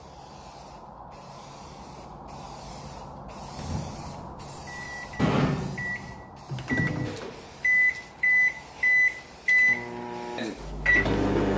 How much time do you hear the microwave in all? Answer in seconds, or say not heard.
8 s.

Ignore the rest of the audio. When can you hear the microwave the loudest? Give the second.
9 s.